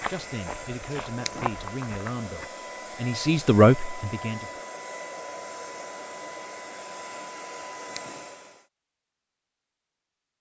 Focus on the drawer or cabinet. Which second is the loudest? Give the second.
1 s.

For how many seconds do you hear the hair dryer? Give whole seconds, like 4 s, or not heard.
9 s.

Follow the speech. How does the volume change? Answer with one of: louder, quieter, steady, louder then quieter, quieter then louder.
louder.